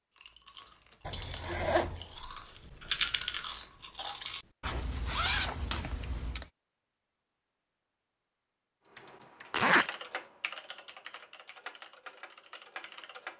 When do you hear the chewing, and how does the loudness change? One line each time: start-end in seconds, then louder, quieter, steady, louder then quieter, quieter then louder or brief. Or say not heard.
0.1-6.1 louder then quieter.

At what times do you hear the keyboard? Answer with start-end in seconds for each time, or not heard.
8.9-13.3.